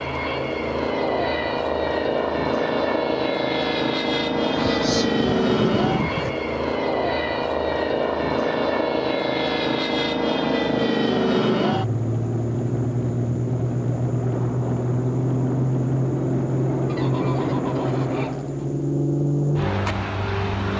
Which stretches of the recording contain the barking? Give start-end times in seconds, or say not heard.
not heard.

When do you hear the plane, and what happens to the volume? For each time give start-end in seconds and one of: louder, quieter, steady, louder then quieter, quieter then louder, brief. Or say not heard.
0.0-20.7 steady.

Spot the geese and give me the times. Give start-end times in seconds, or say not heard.
4.3-6.3, 16.9-18.6.